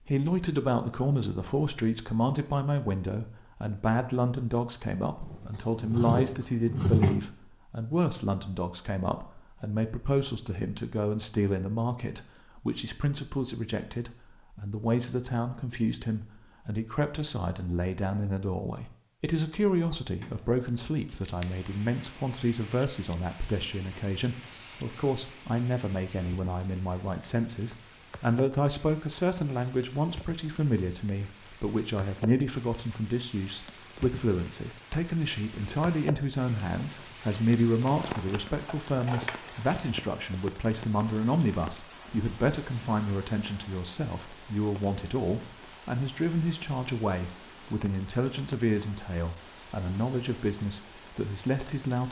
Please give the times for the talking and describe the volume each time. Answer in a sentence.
The talking can be heard from 0.1 to 52.0 s, at a steady volume.